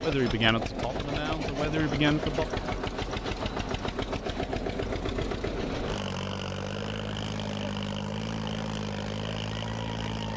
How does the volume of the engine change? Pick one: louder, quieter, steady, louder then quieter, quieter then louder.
steady.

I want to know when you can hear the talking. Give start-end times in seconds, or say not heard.
0.0-2.5.